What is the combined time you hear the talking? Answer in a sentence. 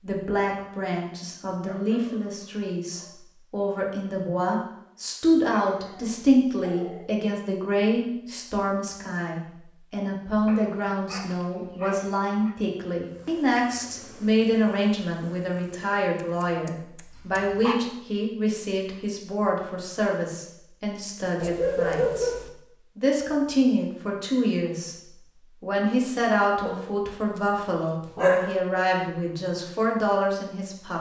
You can hear the talking for 30 seconds altogether.